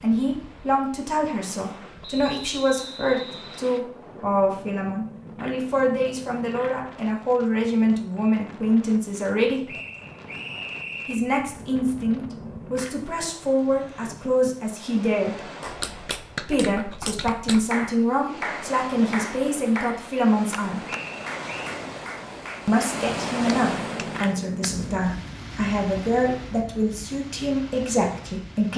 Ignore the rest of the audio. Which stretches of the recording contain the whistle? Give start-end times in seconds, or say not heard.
2.0-3.8, 9.7-11.3, 20.9-21.8.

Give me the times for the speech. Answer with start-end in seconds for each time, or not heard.
0.0-9.7, 11.1-15.4, 16.4-20.8, 22.6-28.7.